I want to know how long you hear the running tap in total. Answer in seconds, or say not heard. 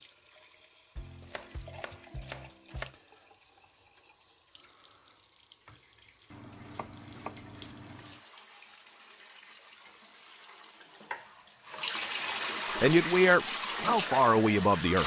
15 s.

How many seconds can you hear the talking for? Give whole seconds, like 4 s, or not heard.
2 s.